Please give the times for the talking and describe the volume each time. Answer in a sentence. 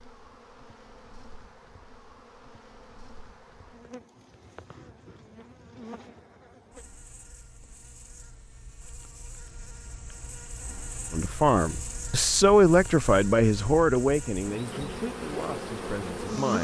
You can hear the talking from 11.1 to 16.5 s, getting louder then quieter.